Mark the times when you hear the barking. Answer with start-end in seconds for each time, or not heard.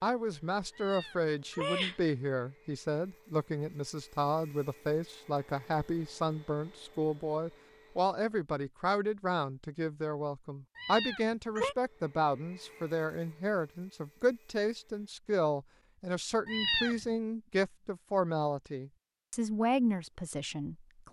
not heard.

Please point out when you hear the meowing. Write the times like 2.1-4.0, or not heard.
0.8-1.9, 10.8-11.8, 16.4-17.1.